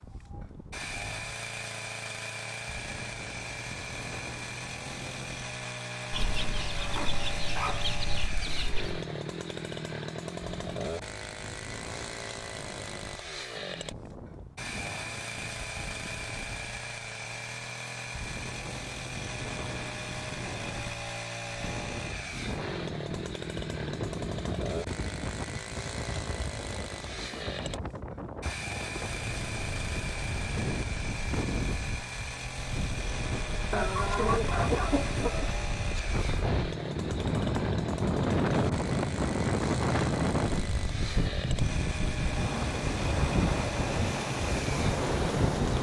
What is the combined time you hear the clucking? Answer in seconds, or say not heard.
5 s.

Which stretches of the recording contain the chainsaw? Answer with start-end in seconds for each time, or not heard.
0.0-45.7.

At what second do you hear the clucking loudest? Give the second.
34 s.